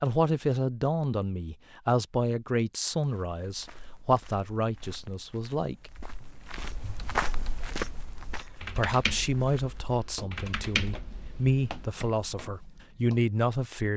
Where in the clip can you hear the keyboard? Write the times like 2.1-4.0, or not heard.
6.6-12.1.